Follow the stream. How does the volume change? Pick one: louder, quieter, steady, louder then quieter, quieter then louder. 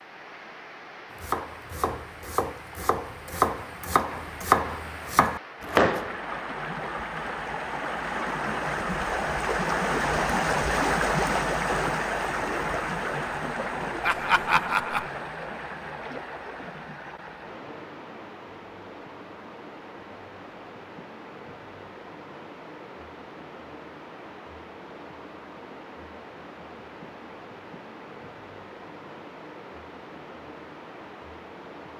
louder then quieter.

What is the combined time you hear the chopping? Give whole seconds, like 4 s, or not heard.
5 s.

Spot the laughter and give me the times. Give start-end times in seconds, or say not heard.
14.0-15.1.